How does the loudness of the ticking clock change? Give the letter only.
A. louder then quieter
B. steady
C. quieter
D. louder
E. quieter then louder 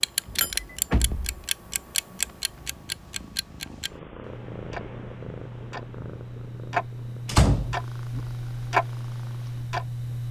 E.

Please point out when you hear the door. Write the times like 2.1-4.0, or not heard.
0.2-1.5, 7.2-8.2.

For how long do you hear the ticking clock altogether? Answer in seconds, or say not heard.
10 s.